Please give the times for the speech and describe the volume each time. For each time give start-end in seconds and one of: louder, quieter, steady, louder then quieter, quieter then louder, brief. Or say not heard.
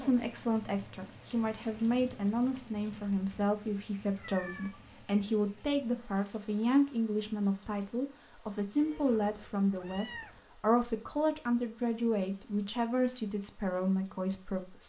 0.0-14.8 steady.